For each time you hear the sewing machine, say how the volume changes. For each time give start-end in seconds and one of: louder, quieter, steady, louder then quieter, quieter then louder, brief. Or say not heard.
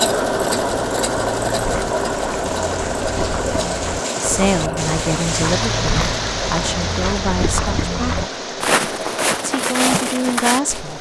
0.0-10.9 quieter.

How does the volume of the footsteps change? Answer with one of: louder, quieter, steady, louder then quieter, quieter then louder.
louder.